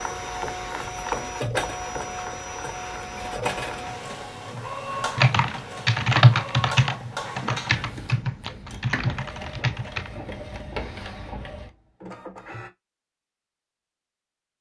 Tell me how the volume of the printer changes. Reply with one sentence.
The loudness of the printer goes down.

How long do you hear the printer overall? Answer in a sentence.
The printer can be heard for 13 seconds in total.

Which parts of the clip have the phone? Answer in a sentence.
The phone can't be heard in this clip.